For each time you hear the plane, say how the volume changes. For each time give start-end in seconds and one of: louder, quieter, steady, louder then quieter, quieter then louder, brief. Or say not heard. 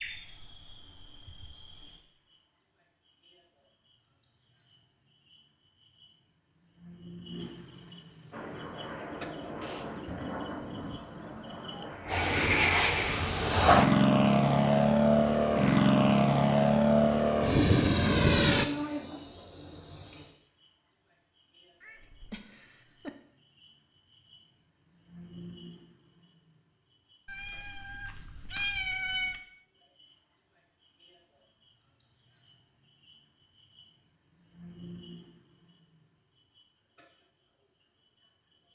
8.3-18.6 louder.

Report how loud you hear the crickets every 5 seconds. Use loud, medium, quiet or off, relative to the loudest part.
quiet, loud, loud, medium, quiet, quiet, quiet, quiet.